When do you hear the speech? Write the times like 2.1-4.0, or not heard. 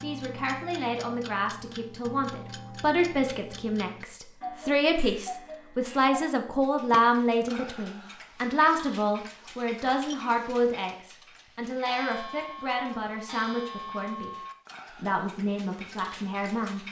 0.0-14.3, 14.9-16.8.